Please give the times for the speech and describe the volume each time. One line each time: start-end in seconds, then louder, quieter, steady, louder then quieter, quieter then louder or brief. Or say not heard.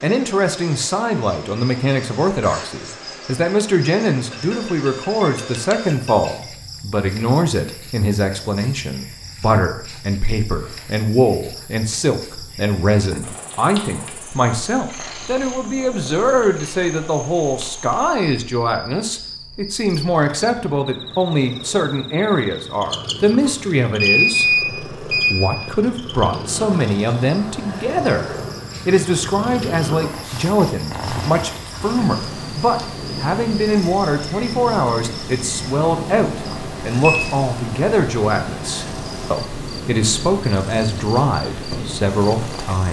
0.0-42.8 steady.